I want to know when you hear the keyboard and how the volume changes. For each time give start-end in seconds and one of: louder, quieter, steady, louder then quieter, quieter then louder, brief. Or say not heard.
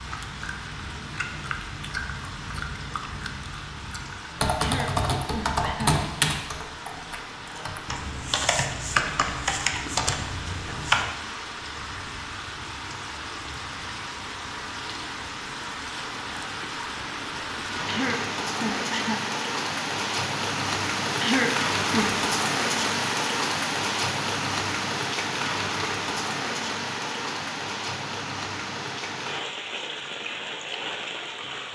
4.3-11.1 quieter then louder.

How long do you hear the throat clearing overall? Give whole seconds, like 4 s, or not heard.
4 s.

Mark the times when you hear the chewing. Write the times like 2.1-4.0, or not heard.
0.0-4.3.